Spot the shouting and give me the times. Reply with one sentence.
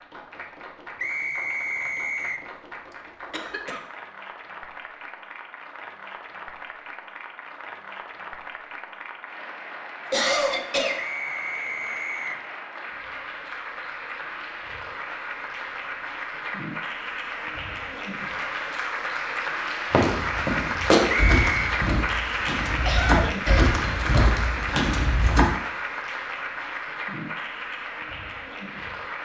You can't hear the shouting here.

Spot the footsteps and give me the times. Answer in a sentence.
The footsteps can be heard from 19.9 to 25.4 s.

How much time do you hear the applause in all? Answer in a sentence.
The applause can be heard for 29 seconds in total.